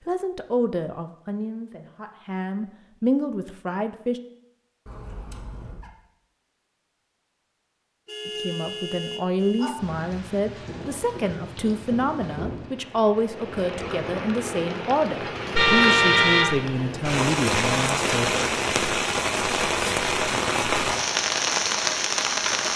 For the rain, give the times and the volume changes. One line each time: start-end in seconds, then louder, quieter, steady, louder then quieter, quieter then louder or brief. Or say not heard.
9.8-22.7 louder.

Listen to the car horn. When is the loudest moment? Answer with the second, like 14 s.
16 s.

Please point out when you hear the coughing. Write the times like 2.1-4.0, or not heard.
not heard.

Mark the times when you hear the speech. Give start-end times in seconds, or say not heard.
0.1-4.2, 8.2-18.4.